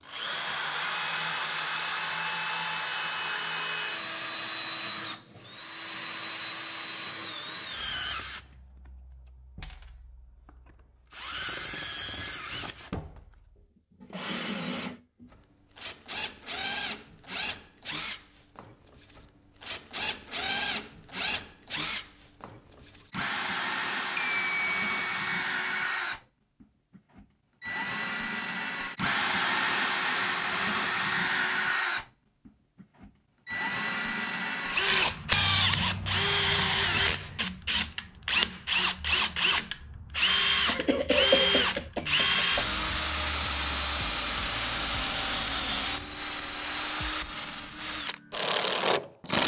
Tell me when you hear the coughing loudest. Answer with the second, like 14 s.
41 s.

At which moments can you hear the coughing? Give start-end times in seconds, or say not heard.
40.6-42.6.